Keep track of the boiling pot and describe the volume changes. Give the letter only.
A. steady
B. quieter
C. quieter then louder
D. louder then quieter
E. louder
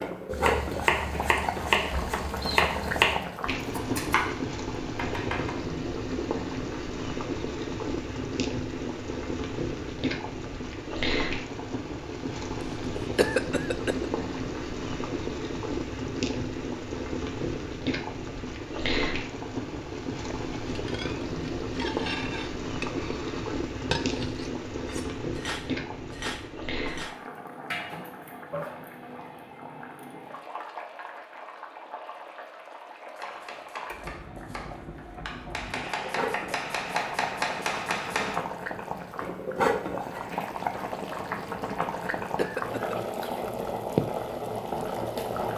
C.